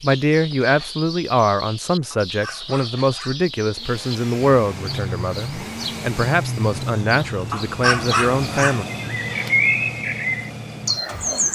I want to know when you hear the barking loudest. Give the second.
8 s.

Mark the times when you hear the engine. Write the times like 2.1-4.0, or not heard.
3.7-11.4.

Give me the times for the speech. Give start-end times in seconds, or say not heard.
0.0-8.8.